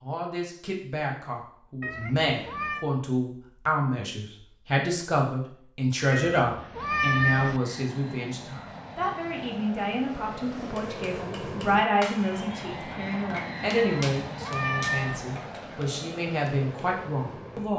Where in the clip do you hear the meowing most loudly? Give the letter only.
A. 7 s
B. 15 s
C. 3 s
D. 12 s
A.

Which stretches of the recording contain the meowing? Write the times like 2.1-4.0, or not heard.
1.8-2.9, 6.1-7.6, 13.8-15.2.